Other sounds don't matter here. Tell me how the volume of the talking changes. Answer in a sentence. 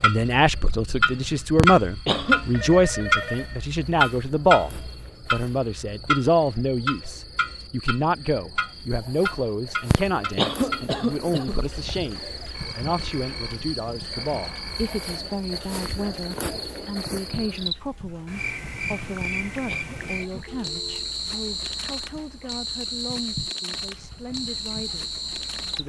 The volume of the talking goes down.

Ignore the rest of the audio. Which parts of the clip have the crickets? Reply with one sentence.
You can hear the crickets from 0.1 to 25.8 s.